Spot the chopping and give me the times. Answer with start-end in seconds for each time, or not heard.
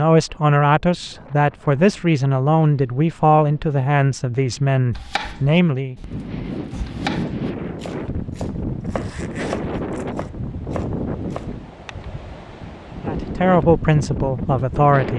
4.9-11.5.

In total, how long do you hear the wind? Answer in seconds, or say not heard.
15 s.